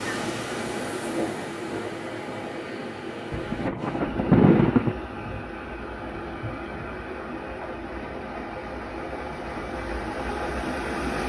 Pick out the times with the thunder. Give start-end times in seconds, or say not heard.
3.3-5.0.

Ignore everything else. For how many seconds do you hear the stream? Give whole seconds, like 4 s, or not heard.
11 s.